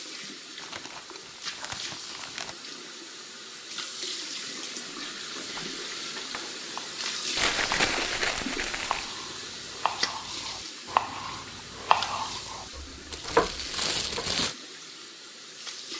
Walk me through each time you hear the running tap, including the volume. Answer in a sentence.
The running tap can be heard from 0.0 to 15.9 s, getting louder then quieter.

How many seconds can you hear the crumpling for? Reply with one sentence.
The crumpling can be heard for 5 seconds in total.